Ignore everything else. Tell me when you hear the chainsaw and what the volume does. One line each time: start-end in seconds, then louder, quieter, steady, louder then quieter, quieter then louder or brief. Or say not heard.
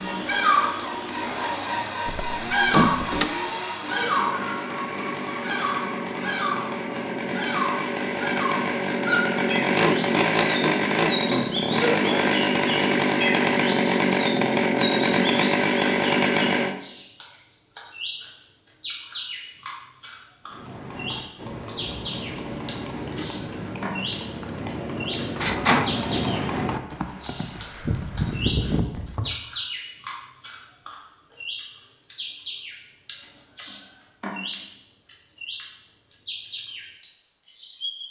0.0-16.8 louder.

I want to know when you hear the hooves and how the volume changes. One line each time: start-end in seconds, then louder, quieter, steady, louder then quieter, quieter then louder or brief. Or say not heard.
20.4-29.4 louder.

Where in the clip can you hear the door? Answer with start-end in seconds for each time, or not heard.
2.0-3.3, 24.9-25.9.